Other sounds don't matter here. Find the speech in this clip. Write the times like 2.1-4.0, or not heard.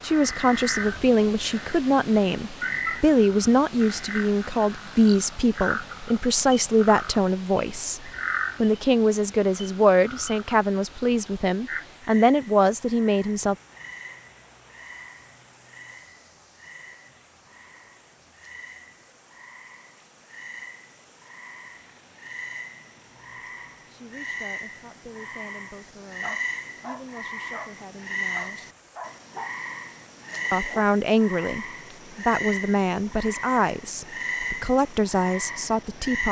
0.0-13.6, 23.4-28.7, 30.5-36.2.